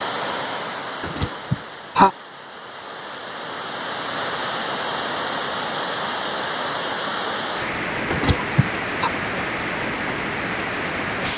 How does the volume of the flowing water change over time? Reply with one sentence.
The volume of the flowing water goes up.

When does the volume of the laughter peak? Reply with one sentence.
The volume of the laughter peaks at 2 seconds.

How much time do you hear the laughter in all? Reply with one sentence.
The laughter can be heard for 2 seconds in total.